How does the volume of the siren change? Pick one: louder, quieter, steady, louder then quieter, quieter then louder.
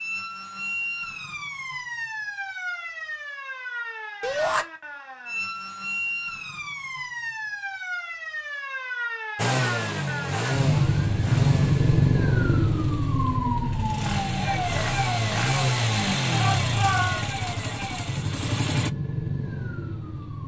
louder then quieter.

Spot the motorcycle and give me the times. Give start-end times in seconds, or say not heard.
9.3-18.9.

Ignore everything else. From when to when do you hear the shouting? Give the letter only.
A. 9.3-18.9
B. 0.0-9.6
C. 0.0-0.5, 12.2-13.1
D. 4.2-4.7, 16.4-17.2
D.